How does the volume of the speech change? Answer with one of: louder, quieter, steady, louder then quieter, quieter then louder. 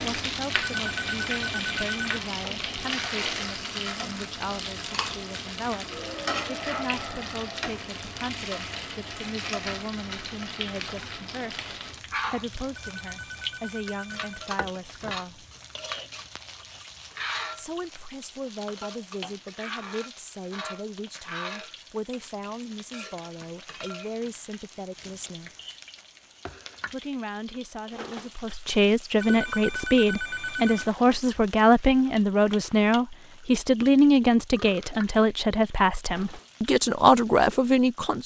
louder.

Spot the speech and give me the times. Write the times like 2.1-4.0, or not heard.
0.0-15.4, 17.6-25.5, 26.9-38.2.